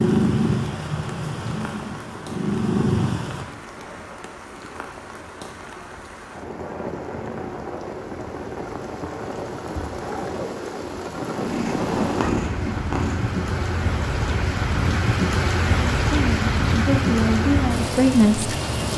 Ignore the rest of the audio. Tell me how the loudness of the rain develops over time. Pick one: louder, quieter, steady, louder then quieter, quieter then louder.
louder.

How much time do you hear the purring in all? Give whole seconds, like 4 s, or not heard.
5 s.